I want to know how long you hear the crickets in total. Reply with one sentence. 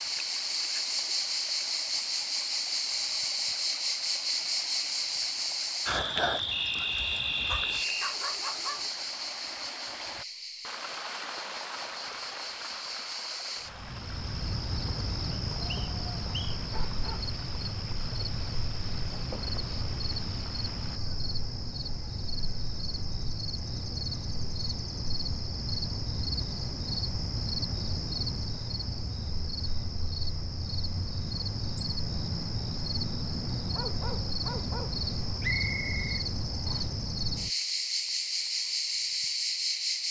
You can hear the crickets for 40 seconds altogether.